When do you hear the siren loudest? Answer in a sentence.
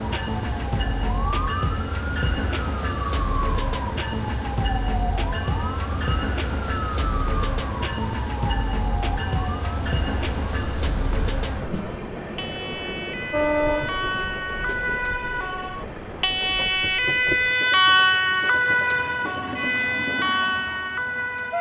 The volume of the siren peaks at 18 seconds.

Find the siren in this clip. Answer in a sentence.
You can hear the siren from 0.0 to 21.5 s.